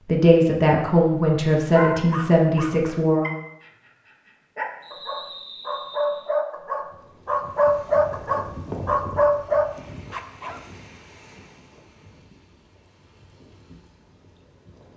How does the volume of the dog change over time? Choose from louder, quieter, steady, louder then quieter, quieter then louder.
louder.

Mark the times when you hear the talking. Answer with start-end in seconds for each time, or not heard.
0.1-3.3.